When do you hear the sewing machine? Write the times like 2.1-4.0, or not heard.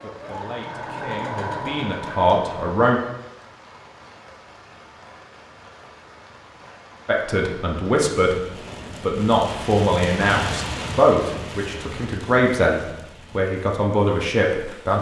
0.0-2.8.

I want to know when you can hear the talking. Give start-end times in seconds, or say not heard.
0.0-3.0, 7.0-8.3, 9.0-14.9.